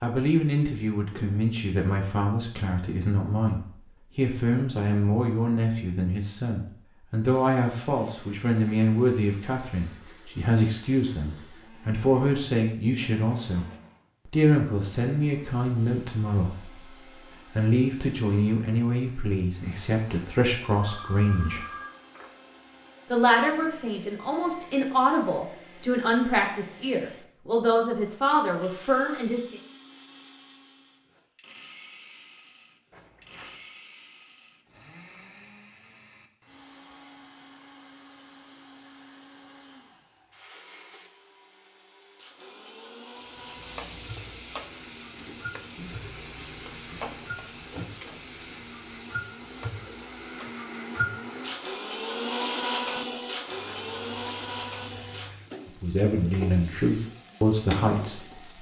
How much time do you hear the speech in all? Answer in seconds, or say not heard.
30 s.